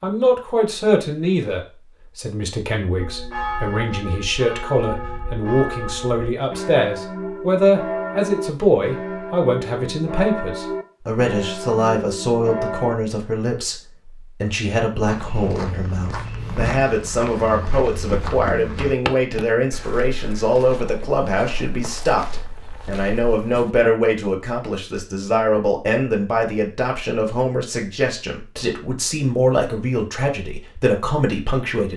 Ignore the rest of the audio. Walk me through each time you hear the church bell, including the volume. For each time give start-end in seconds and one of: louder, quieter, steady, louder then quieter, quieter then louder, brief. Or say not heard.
3.0-12.9 steady.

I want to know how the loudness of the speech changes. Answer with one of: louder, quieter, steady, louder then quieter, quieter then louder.
steady.